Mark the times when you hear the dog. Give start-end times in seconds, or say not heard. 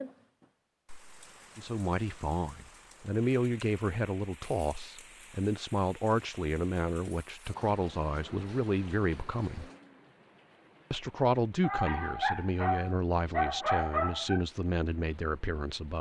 11.6-14.4.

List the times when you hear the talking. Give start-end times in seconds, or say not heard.
1.6-9.7, 10.9-15.9.